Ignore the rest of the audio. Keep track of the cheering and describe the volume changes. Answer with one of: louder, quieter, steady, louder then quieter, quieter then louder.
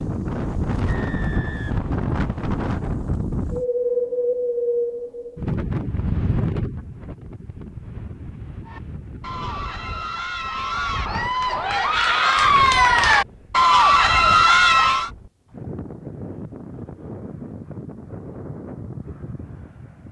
louder.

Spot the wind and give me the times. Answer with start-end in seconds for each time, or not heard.
0.0-20.0.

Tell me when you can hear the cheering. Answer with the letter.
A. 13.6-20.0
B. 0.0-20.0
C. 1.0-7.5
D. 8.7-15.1
D.